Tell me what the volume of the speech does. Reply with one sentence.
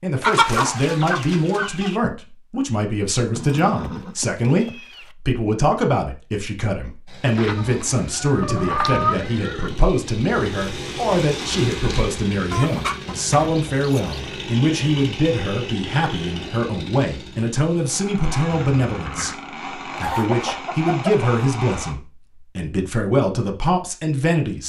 The volume of the speech stays about the same.